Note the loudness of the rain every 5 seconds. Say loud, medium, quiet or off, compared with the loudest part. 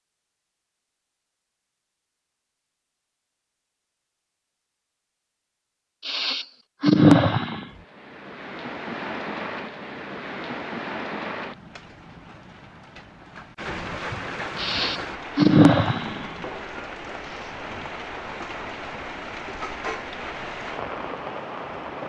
off, loud, loud, loud, loud.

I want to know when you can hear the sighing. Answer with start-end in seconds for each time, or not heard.
6.0-7.7, 14.6-16.3.